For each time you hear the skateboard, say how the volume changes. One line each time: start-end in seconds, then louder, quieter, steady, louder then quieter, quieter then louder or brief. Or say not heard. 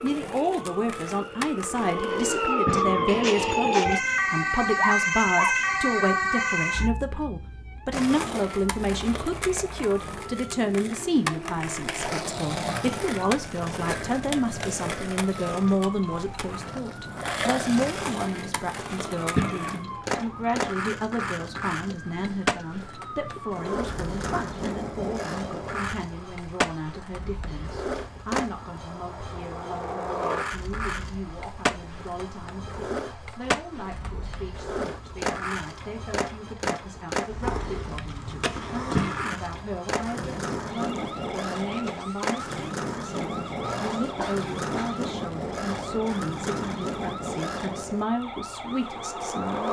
0.0-2.4 brief
7.9-49.6 steady.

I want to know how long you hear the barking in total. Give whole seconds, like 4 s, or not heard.
3 s.